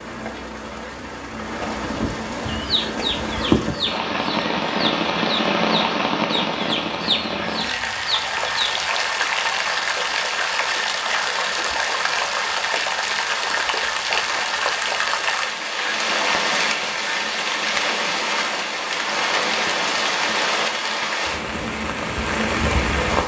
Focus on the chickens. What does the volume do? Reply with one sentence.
The loudness of the chickens goes down, then up.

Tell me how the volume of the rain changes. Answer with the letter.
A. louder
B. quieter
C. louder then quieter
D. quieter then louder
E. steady
E.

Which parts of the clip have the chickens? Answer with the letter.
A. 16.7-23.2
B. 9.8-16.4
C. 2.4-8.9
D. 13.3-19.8
C.